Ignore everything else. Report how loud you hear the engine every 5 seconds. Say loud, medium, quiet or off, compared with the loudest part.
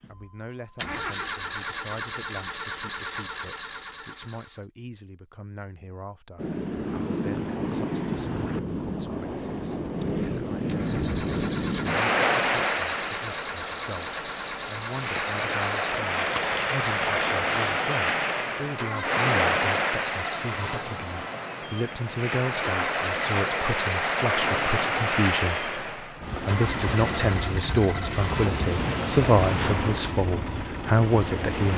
loud, off, loud, loud, loud, loud, loud.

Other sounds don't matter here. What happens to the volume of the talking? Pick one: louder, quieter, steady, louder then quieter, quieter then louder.
louder.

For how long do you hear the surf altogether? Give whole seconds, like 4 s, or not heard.
25 s.